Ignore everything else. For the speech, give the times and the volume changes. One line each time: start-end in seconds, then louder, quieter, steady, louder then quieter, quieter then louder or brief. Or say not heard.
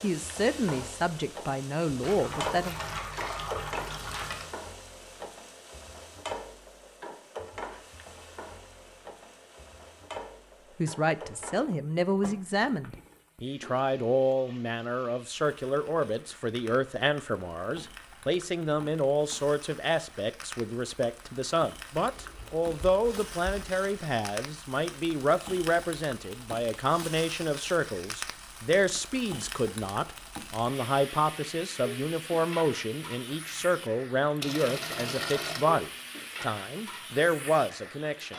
0.0-2.8 brief
10.8-38.3 steady.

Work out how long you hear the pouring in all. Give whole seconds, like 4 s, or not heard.
6 s.